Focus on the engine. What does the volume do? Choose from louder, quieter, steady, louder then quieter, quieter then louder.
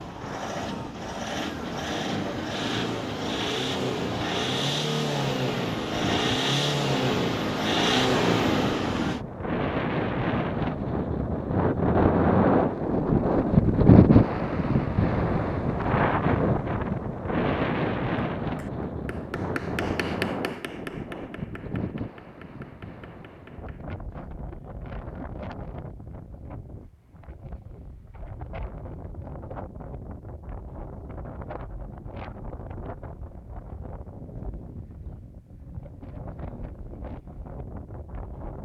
louder.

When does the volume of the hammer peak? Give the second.
20 s.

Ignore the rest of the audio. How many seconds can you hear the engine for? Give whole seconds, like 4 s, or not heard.
9 s.